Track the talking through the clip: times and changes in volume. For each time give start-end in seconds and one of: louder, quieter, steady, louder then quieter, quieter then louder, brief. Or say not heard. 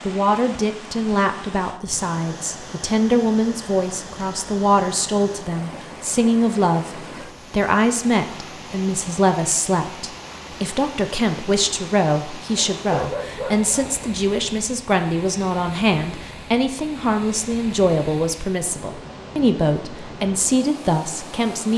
0.1-21.7 steady.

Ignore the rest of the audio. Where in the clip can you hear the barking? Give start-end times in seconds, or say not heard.
12.6-14.1.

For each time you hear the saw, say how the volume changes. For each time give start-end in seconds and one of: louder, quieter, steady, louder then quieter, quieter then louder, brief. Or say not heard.
not heard.